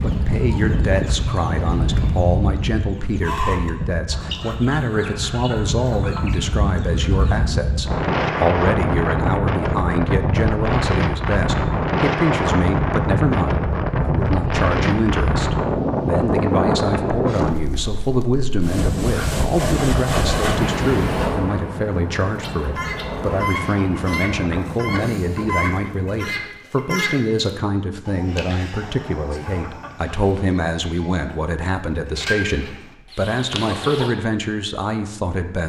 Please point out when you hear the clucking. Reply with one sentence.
The clucking can be heard from 0.0 to 7.5 s and from 22.4 to 34.1 s.